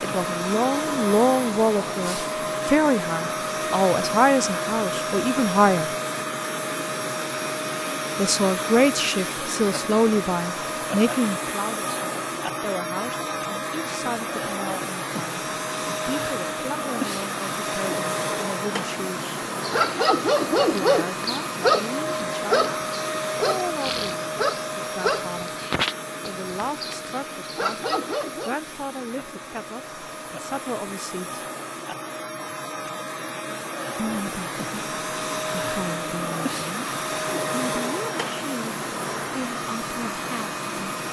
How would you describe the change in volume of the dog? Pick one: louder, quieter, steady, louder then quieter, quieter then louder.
quieter.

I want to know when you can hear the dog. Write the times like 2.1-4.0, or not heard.
19.6-28.6.